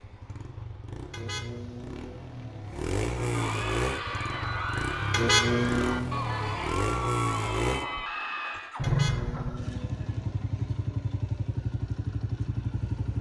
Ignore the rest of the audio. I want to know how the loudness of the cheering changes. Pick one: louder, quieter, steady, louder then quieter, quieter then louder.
steady.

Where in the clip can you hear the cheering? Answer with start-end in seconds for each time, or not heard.
3.1-8.8.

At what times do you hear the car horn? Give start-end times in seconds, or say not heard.
1.1-2.8, 5.1-6.1, 8.8-10.9.